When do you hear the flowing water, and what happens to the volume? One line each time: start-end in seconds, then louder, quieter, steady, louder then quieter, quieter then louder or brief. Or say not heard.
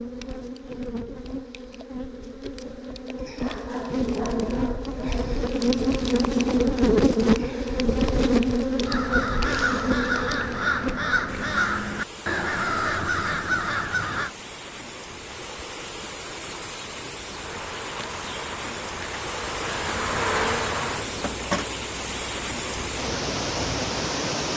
11.2-24.5 louder.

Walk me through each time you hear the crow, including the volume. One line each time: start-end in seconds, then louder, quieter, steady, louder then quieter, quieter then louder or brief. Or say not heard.
8.8-14.3 steady.